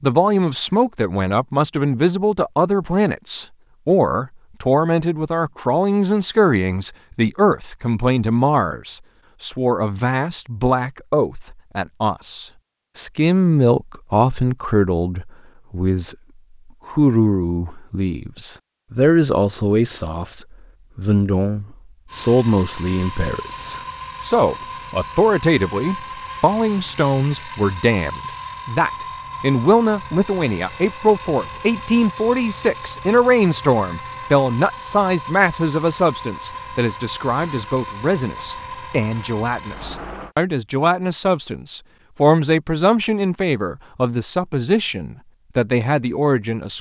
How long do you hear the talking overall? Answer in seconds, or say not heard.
46 s.